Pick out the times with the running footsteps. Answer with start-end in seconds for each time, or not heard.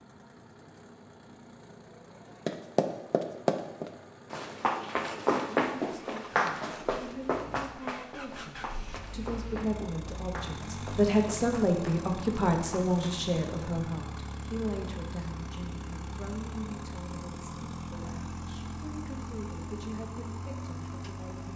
2.5-13.2.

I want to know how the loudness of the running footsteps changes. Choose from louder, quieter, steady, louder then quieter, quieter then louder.
quieter.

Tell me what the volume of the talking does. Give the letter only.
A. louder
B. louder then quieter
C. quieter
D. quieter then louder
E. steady
B.